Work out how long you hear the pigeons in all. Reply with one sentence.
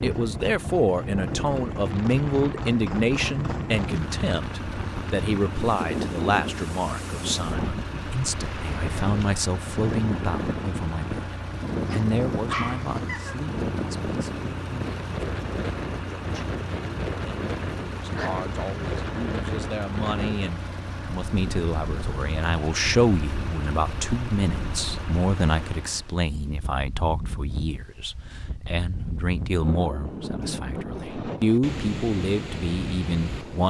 The pigeons can't be heard in this clip.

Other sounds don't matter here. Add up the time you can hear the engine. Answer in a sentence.
You can hear the engine for 26 seconds altogether.